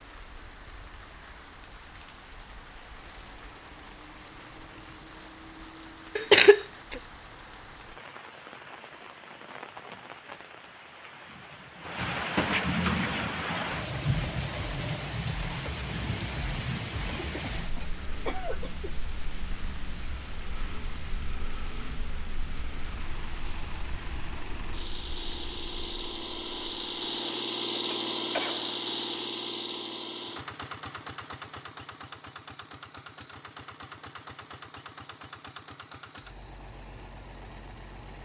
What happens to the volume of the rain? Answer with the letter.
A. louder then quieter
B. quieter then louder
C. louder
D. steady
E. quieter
A.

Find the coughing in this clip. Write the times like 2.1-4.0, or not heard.
6.2-7.0, 17.1-18.9, 27.1-28.8.